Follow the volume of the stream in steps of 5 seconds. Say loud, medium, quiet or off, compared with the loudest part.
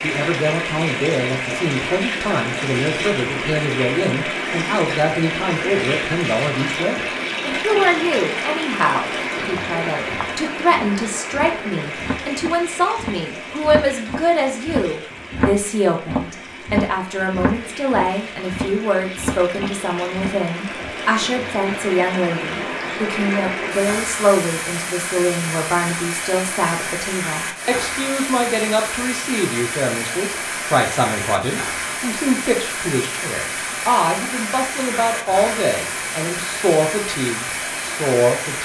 loud, loud, medium, medium, loud, loud, loud, loud.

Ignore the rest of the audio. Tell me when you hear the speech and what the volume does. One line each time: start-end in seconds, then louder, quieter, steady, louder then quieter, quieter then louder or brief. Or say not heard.
0.0-38.5 steady.